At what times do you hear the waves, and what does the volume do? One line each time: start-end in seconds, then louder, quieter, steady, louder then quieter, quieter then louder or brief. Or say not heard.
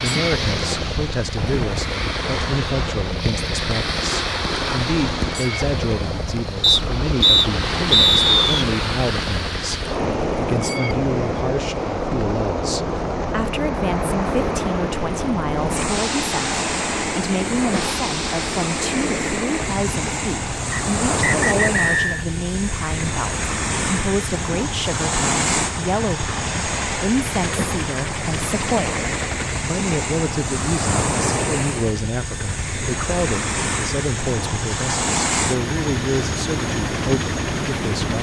0.0-38.1 steady.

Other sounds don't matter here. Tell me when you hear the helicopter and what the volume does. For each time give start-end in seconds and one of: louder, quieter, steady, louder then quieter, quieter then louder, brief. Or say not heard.
0.0-38.1 steady.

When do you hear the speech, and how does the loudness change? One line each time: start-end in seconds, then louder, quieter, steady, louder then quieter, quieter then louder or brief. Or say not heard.
0.0-38.1 steady.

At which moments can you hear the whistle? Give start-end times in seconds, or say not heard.
6.6-8.7, 20.7-22.2.